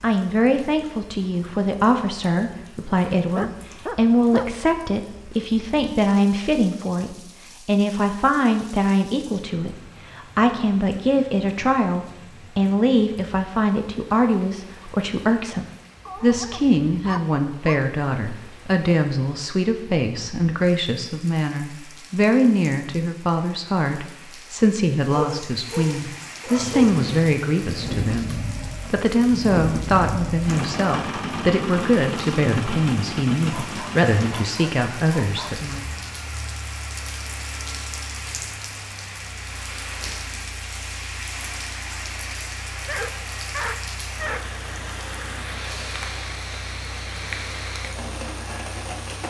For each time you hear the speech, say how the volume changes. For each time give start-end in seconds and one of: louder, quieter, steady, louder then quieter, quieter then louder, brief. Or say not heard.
0.0-35.9 steady.